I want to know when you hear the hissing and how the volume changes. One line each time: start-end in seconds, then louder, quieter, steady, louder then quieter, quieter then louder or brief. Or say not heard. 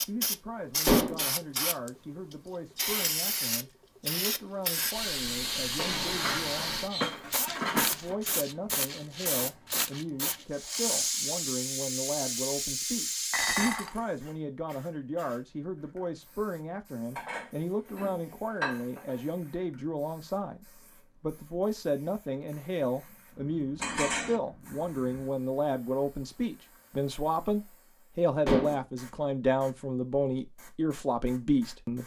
0.0-32.0 quieter.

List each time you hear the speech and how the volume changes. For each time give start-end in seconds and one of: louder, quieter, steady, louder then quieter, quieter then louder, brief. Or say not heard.
0.1-32.0 louder.